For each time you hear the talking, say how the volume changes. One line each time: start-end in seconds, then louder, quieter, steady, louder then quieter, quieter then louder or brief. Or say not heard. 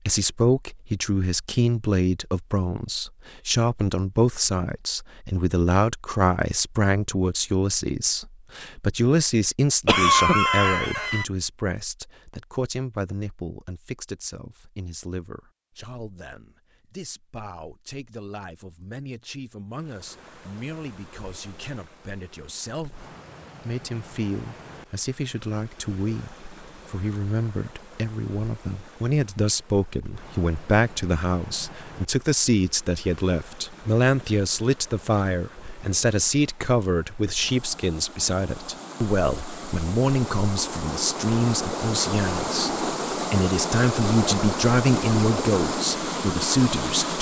0.1-47.1 quieter then louder.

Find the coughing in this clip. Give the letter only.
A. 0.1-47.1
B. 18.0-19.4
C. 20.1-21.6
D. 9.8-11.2
D.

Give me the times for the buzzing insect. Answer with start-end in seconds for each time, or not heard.
not heard.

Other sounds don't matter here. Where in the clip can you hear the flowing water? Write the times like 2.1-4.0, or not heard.
19.7-47.1.